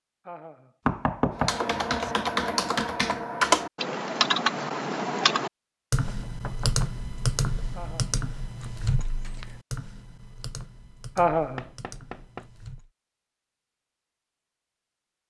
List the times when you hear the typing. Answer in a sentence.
You can hear the typing from 1.4 to 12.9 s.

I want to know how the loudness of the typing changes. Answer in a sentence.
The loudness of the typing goes down.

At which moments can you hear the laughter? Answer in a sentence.
You can hear the laughter from 0.2 to 0.8 s, from 7.7 to 8.2 s and from 11.2 to 11.7 s.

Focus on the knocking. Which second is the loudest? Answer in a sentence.
The volume of the knocking peaks at 1 second.